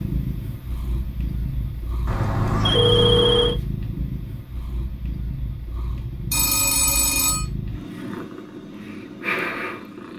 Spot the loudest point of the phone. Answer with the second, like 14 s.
3 s.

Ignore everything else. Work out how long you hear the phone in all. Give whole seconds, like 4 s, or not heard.
3 s.